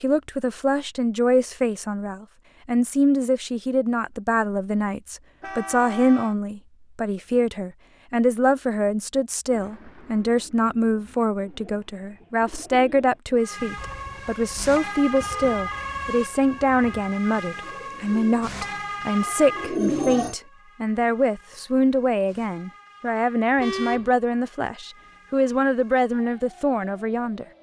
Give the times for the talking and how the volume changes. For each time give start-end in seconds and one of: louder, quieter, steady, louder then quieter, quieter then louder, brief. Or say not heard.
0.0-27.4 steady.